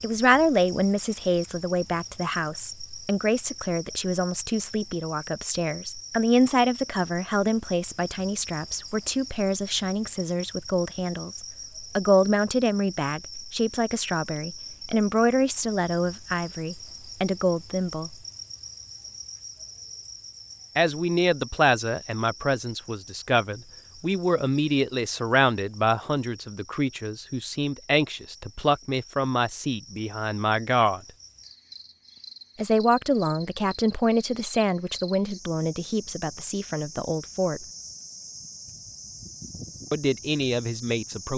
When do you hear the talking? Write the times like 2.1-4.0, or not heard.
0.0-18.1, 20.8-31.0, 32.5-37.6, 39.9-41.3.